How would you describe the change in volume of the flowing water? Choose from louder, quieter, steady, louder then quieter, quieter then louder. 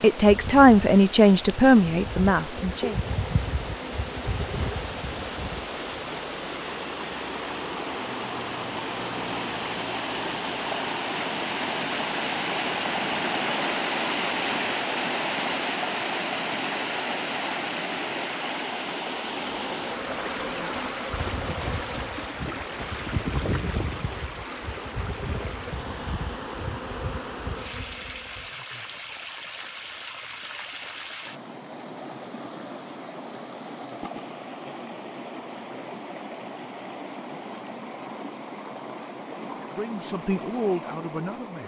louder then quieter.